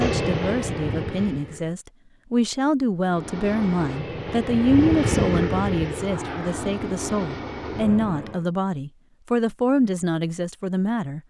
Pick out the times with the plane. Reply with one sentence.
The plane can be heard from 0.0 to 1.8 s and from 3.0 to 8.4 s.